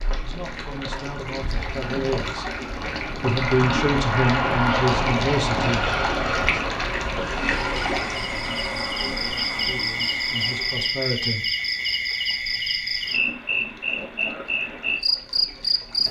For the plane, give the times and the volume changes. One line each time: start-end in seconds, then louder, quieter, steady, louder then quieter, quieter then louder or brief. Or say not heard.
3.2-10.9 quieter.